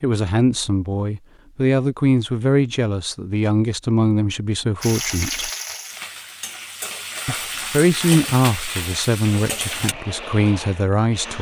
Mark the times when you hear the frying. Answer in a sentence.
You can hear the frying from 4.8 to 9.9 s.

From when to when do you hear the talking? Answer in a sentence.
You can hear the talking from 0.0 to 5.5 s and from 7.2 to 11.3 s.